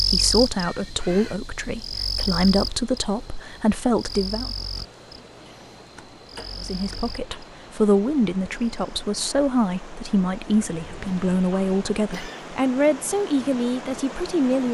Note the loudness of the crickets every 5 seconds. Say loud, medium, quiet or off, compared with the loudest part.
loud, quiet, off.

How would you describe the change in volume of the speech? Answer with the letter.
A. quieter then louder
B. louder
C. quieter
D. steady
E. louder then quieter
D.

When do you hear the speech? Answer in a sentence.
The speech can be heard from 0.0 to 4.5 s and from 6.6 to 14.7 s.